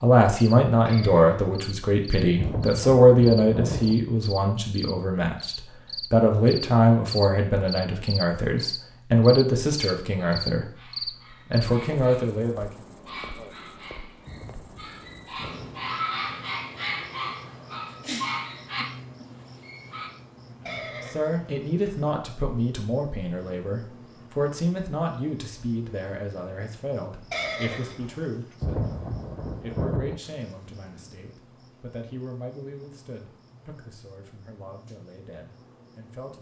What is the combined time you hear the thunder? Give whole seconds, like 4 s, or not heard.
5 s.